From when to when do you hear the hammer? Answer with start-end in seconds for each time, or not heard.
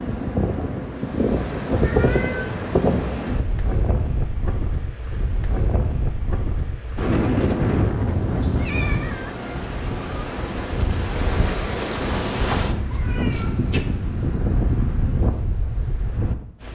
not heard.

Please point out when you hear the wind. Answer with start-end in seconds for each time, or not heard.
0.0-16.7.